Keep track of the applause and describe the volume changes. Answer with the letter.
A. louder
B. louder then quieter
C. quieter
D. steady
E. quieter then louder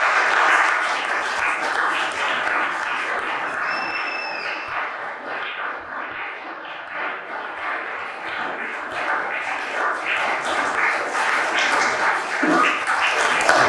E.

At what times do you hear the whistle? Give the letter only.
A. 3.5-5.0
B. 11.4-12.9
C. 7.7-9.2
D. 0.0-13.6
A.